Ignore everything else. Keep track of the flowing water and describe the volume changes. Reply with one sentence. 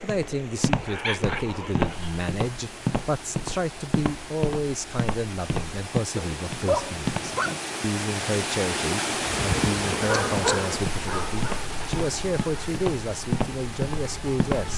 The volume of the flowing water goes up, then down.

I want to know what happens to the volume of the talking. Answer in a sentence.
The loudness of the talking stays about the same.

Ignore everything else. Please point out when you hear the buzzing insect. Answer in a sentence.
You can hear the buzzing insect from 9.2 to 14.7 s.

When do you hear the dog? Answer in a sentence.
The dog can be heard from 0.7 to 2.2 s, from 6.2 to 7.6 s and from 10.1 to 11.4 s.